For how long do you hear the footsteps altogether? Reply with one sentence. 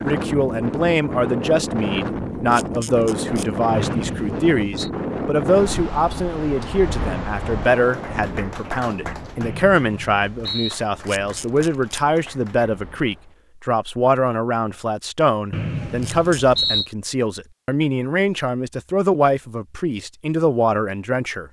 You can't hear the footsteps here.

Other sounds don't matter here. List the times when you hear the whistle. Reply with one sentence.
The whistle can be heard from 3.7 to 4.9 s, from 9.4 to 10.8 s and from 15.5 to 16.9 s.